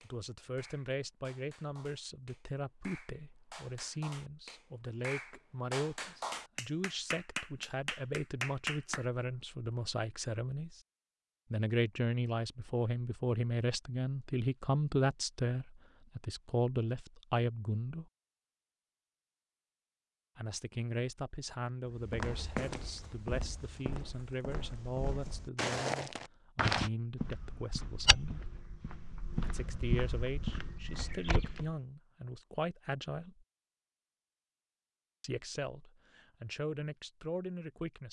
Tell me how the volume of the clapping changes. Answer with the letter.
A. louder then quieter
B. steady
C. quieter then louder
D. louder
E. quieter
D.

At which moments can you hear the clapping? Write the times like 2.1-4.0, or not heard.
0.0-9.1.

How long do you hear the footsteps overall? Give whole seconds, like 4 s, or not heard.
10 s.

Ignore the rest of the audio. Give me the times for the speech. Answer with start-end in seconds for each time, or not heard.
0.0-10.8, 11.5-18.1, 20.4-28.4, 29.4-33.5, 35.2-38.0.